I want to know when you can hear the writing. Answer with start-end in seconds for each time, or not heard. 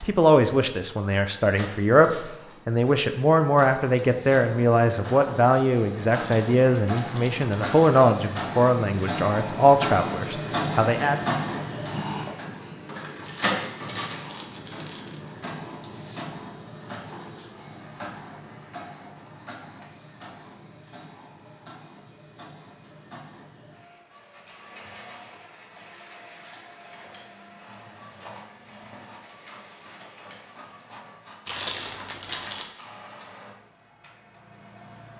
not heard.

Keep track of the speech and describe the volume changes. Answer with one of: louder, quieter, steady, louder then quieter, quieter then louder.
steady.